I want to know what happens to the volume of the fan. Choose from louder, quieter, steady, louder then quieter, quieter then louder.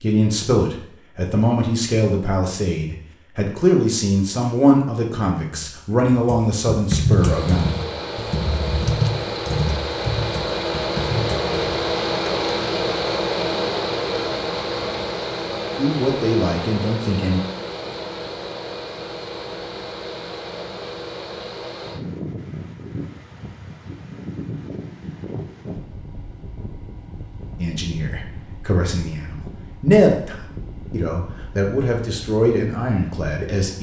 quieter.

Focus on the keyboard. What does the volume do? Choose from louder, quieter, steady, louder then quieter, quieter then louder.
louder then quieter.